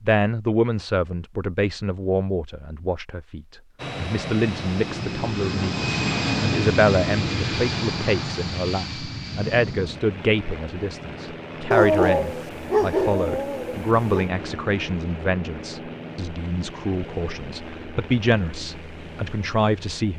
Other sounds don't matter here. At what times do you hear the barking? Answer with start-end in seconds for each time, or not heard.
11.7-14.3.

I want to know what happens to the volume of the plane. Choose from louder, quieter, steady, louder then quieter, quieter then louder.
quieter.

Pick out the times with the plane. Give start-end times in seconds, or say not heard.
3.8-20.1.